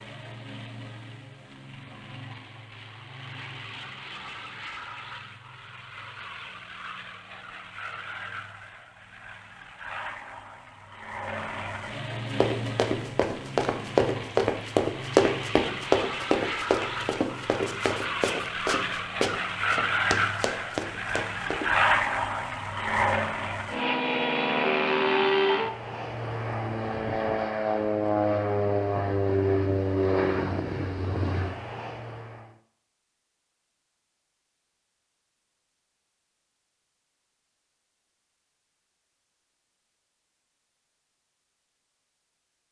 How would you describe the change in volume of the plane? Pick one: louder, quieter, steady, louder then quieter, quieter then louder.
louder.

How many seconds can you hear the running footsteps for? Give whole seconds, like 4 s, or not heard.
9 s.